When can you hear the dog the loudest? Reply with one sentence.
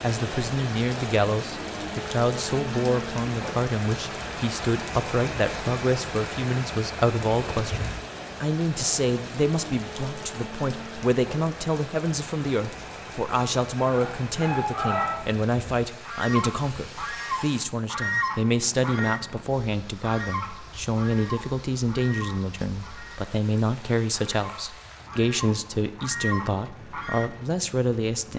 The loudest moment of the dog is at 15 seconds.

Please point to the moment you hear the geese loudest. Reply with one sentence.
The loudest moment of the geese is at 18 seconds.